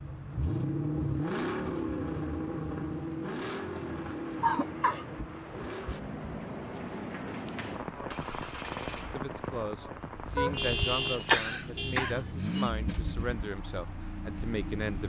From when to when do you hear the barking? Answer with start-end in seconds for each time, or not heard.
not heard.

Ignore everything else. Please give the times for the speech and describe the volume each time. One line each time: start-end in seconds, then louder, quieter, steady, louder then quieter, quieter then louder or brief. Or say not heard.
8.9-15.0 steady.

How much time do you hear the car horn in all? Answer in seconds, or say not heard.
2 s.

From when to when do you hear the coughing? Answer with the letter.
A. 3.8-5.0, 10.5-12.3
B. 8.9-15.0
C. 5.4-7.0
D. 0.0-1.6
A.